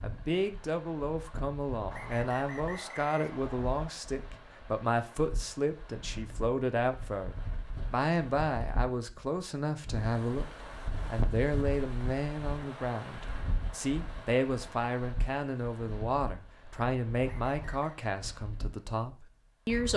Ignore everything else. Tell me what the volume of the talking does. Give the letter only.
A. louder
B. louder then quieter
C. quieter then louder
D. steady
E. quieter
D.